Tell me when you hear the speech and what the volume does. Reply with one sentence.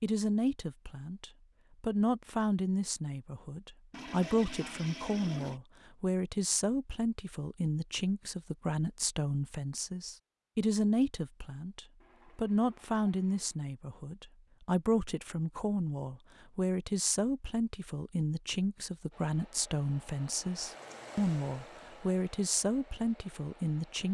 You can hear the speech from 0.0 to 24.0 s, at a steady volume.